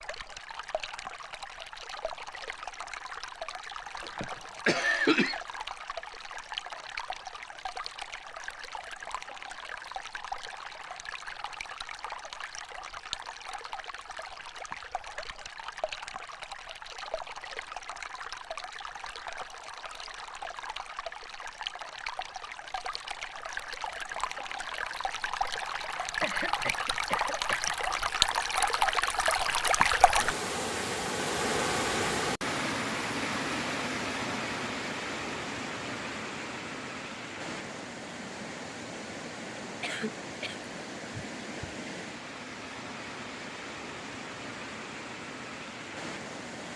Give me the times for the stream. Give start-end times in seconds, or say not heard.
0.0-46.7.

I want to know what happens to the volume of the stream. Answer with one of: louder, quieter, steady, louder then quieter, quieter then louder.
louder then quieter.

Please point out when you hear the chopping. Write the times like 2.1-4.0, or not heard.
not heard.